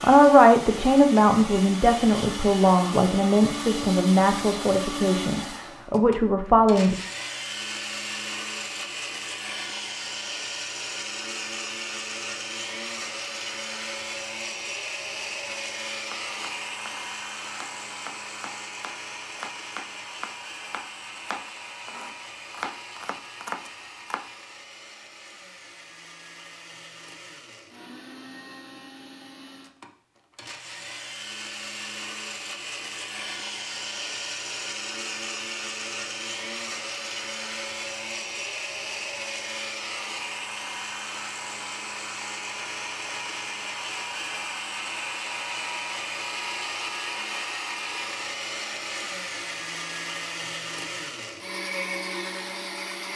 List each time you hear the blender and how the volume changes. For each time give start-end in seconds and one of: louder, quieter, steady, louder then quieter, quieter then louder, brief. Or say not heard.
0.0-53.1 quieter then louder.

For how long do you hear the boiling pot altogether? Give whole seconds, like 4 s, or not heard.
not heard.